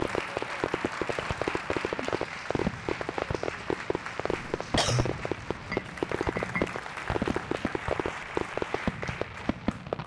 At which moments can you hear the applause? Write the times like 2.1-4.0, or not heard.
0.0-10.0.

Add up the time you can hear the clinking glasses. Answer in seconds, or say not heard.
2 s.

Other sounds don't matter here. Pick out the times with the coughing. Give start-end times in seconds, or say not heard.
4.2-5.0.